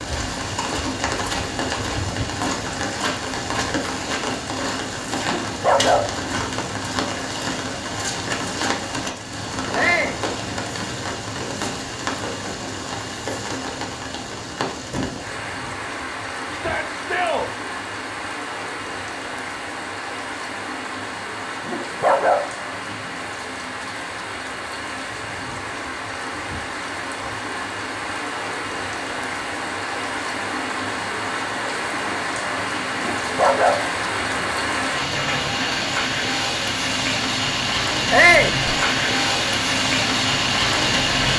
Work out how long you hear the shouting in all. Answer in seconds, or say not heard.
2 s.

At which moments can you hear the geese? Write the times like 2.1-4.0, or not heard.
not heard.